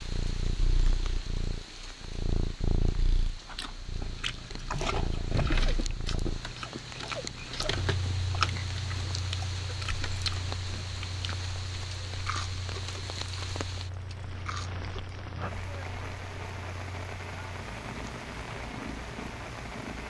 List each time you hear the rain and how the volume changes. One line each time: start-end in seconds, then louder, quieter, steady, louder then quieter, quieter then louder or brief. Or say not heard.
0.0-20.0 louder.